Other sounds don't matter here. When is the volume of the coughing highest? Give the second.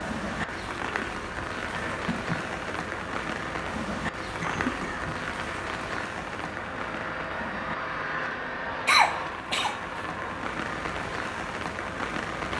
9 s.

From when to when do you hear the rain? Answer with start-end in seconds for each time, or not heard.
0.0-12.5.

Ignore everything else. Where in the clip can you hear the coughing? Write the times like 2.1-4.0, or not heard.
1.7-2.5, 4.4-5.2, 8.8-9.8.